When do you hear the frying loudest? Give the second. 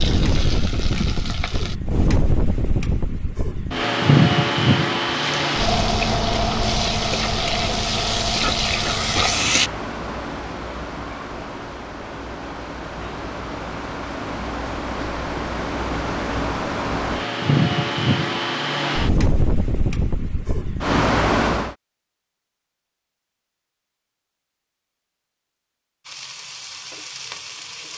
9 s.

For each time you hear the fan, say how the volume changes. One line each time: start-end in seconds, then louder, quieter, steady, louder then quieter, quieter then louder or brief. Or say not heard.
0.0-21.8 quieter then louder.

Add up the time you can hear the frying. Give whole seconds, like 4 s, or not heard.
8 s.